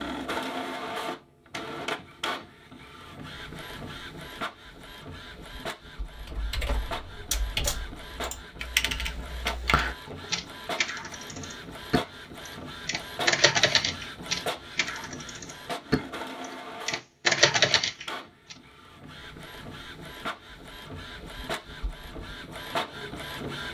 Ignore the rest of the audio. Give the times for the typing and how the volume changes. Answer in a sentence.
The typing can be heard from 6.2 to 18.6 s, getting louder.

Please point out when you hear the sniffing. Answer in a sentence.
You can't hear the sniffing here.